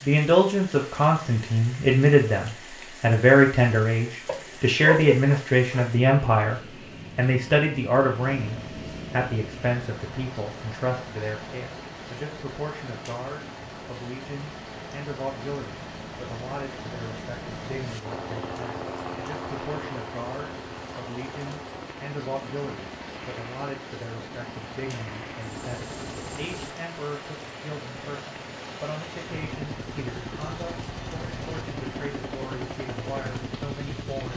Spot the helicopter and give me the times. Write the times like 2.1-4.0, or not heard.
8.2-34.3.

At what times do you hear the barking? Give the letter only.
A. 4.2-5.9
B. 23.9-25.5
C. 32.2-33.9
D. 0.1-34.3
A.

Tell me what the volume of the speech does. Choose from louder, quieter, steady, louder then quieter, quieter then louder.
quieter.